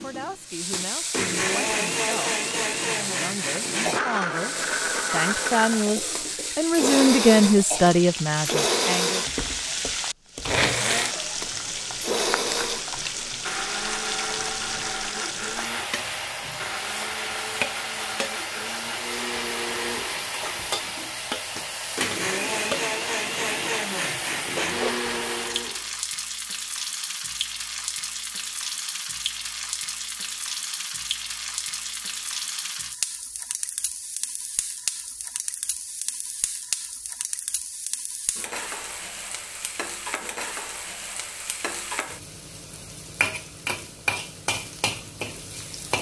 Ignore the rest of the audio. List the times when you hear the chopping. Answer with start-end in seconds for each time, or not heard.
not heard.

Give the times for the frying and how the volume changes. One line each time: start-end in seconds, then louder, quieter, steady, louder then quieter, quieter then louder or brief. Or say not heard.
0.5-45.9 steady.